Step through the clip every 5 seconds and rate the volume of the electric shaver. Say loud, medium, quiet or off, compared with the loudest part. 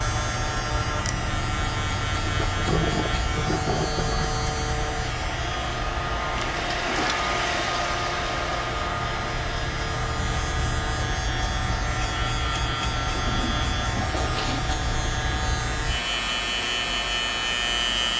loud, medium, loud, loud.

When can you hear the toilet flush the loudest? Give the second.
3 s.